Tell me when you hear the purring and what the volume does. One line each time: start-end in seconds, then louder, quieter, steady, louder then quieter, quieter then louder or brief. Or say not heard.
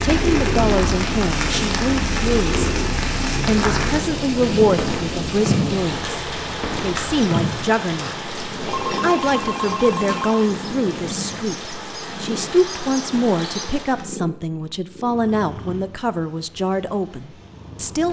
0.0-18.0 quieter.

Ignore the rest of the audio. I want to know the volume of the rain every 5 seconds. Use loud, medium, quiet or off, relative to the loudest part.
loud, loud, medium, off.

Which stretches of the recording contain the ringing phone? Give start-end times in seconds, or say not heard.
8.7-10.5.